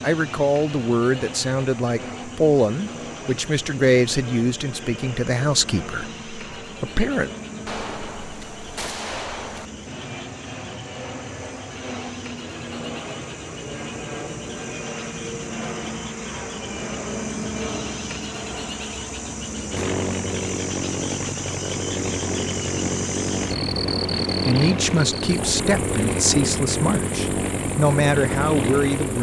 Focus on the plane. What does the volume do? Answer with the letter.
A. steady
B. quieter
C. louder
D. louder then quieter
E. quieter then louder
C.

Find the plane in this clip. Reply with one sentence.
The plane can be heard from 0.0 to 29.1 s.